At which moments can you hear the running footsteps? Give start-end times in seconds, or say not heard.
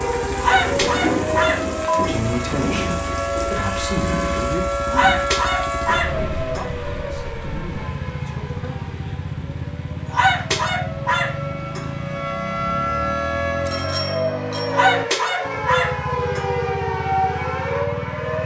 not heard.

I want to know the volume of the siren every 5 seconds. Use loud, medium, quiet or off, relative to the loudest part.
loud, medium, loud, loud.